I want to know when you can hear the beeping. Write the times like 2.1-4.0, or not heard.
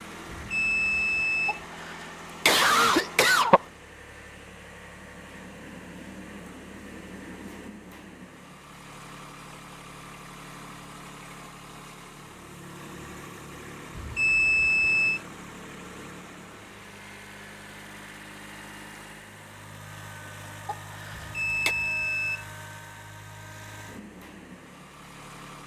0.3-1.6, 13.9-15.2, 21.1-22.4.